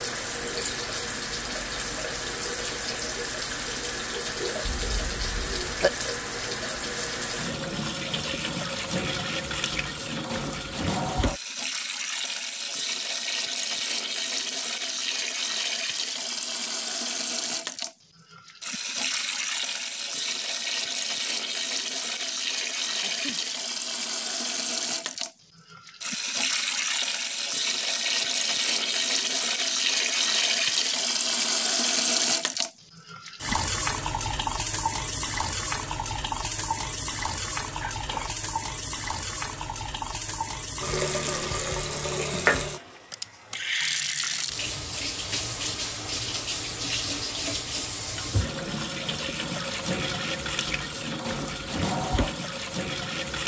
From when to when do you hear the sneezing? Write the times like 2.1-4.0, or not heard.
4.7-5.9, 23.0-23.6, 37.8-38.4.